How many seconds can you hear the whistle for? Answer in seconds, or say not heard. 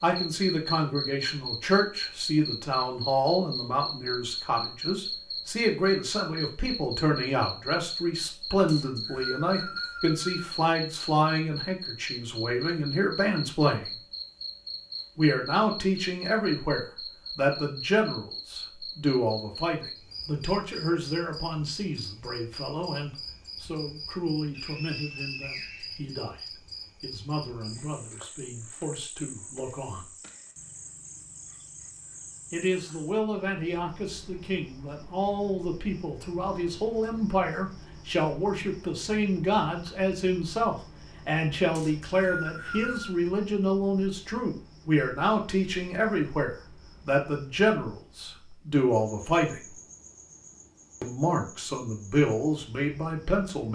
5 s.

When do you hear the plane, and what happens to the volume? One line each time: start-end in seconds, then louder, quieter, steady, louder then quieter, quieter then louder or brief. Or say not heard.
not heard.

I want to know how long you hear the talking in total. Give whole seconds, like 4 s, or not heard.
49 s.